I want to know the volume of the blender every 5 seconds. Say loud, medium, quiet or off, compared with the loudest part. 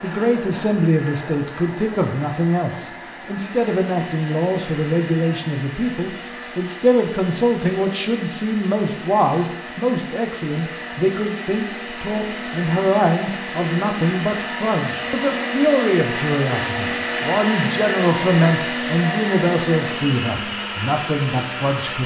medium, medium, medium, loud, loud.